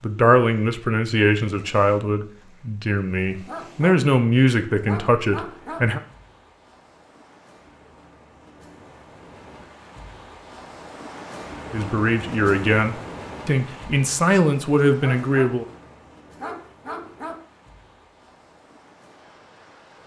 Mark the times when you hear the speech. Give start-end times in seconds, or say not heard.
0.0-6.0, 11.7-15.7.